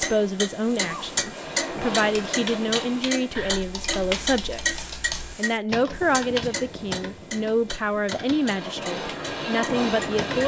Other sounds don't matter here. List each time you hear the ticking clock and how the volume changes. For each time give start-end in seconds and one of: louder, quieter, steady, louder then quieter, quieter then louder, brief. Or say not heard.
0.0-10.2 quieter.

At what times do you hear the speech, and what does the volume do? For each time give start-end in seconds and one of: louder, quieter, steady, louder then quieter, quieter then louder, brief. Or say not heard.
0.0-10.4 steady.